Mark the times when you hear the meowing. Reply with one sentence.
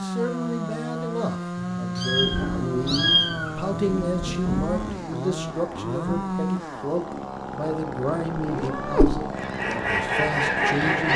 The meowing can be heard from 1.6 to 3.8 s and from 8.3 to 9.2 s.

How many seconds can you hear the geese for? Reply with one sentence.
You can hear the geese for 2 seconds altogether.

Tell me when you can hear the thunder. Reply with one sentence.
The thunder can be heard from 2.1 to 6.5 s.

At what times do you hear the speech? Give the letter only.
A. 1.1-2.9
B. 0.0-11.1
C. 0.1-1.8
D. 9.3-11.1
B.